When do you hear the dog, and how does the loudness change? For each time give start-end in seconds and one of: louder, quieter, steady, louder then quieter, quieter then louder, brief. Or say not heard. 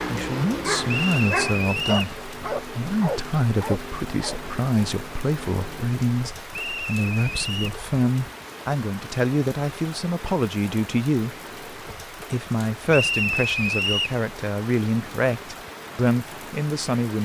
0.0-4.4 steady.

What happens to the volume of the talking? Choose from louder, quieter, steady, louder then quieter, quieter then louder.
steady.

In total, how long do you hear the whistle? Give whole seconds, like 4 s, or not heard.
4 s.